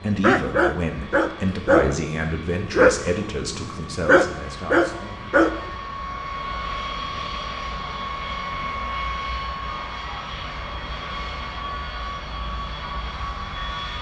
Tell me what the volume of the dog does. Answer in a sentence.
The volume of the dog stays about the same.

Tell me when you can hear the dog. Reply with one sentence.
The dog can be heard from 0.0 to 5.7 s.